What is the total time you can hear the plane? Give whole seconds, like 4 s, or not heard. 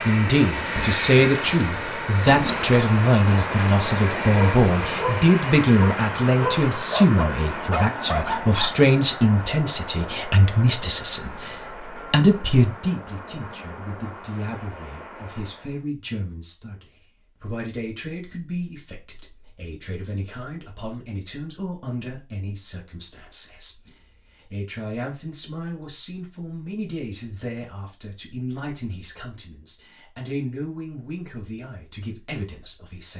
16 s.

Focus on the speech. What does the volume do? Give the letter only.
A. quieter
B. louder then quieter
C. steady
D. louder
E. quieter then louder
A.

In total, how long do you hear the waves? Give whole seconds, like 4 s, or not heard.
not heard.